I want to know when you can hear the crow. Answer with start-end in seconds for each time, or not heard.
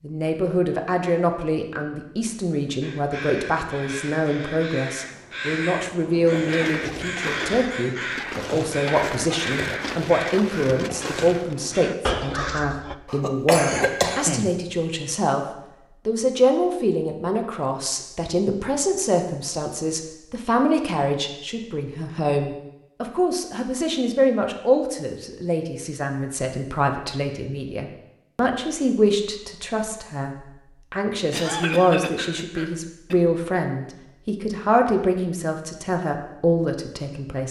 2.8-12.9.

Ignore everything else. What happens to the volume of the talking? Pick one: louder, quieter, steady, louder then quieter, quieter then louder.
steady.